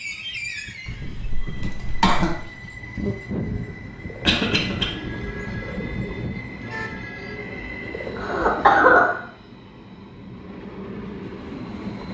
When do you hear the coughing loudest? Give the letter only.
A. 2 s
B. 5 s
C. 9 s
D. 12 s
C.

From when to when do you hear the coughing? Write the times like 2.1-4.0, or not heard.
0.8-2.4, 4.2-4.8, 8.2-9.2.